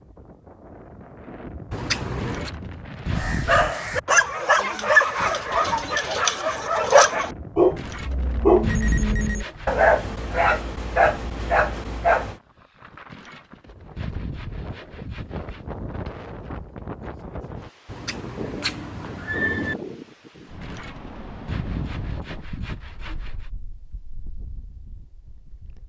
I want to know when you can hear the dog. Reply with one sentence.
You can hear the dog from 3.1 to 12.3 s.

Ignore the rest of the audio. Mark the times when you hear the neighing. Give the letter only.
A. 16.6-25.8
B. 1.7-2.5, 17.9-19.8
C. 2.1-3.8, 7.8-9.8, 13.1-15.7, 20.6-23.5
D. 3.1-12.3
B.